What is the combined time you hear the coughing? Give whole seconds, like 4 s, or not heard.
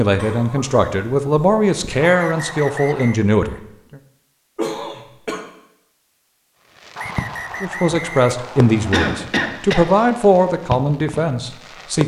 4 s.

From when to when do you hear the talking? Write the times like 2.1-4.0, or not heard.
0.0-4.0, 7.6-12.0.